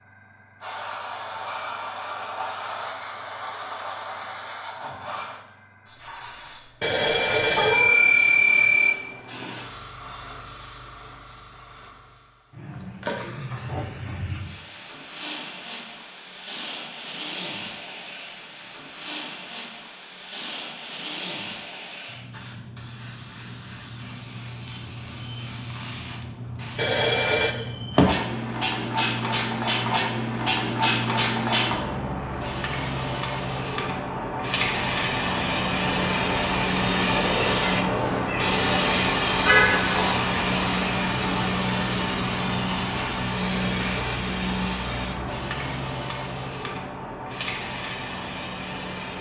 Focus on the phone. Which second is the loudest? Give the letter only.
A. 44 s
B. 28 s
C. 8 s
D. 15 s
C.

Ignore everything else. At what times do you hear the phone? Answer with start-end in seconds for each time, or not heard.
6.8-8.9, 26.8-27.6, 43.4-44.1.